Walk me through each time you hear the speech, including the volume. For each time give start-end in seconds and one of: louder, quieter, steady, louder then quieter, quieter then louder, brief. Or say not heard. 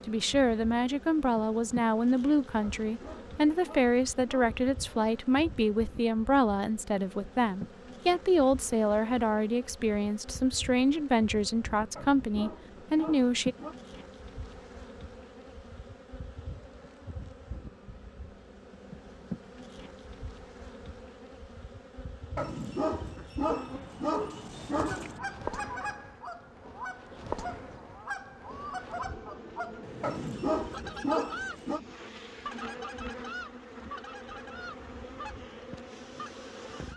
0.1-13.6 steady.